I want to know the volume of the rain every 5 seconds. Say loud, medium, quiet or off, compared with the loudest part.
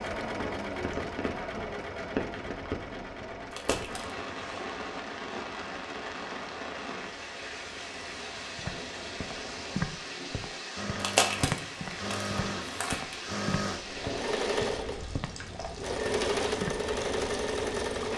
loud, loud, loud, medium.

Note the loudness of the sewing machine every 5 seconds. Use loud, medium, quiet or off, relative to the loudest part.
medium, quiet, loud, loud.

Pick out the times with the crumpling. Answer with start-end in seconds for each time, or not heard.
3.5-4.2, 10.9-13.4.